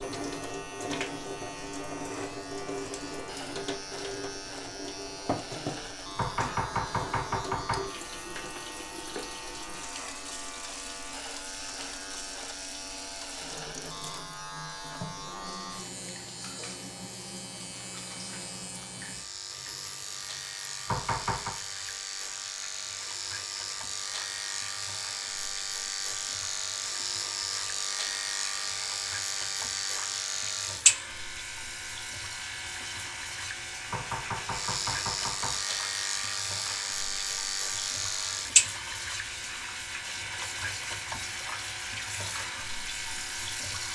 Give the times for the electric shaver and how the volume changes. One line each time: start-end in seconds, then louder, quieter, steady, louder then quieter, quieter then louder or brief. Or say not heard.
0.0-43.8 louder.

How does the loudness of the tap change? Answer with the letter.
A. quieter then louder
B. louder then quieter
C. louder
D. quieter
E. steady
A.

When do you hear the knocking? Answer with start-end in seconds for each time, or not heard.
6.2-7.9, 20.9-21.6, 33.9-35.6.